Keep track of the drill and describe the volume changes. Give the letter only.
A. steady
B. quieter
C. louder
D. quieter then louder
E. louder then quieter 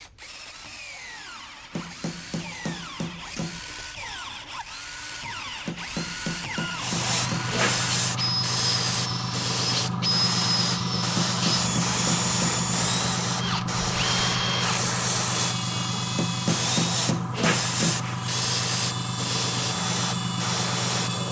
E.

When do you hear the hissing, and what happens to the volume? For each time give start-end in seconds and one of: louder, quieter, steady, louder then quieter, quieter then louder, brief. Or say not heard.
6.8-21.2 steady.